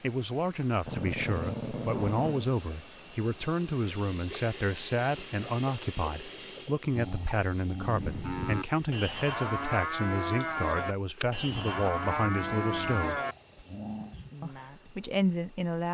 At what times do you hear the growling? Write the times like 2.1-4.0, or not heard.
0.8-2.5, 7.0-8.1, 11.4-14.2.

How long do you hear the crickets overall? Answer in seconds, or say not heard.
16 s.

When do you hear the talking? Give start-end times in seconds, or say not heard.
0.0-13.2, 14.4-15.8.